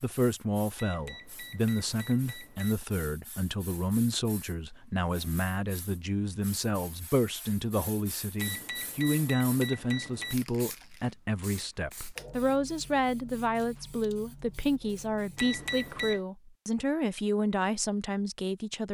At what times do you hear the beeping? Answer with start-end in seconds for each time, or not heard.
0.8-2.8, 8.3-10.3, 15.3-16.2.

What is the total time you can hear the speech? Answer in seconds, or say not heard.
19 s.